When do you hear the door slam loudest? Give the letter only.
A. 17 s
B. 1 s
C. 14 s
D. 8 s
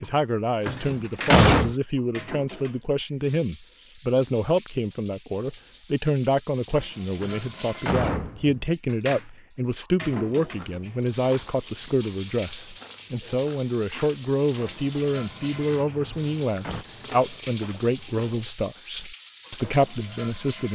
B.